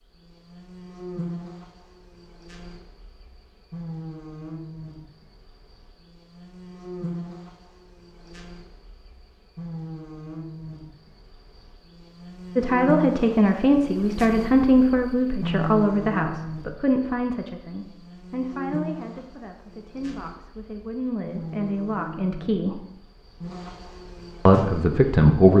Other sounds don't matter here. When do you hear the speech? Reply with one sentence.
You can hear the speech from 12.6 to 22.8 s and from 24.4 to 25.5 s.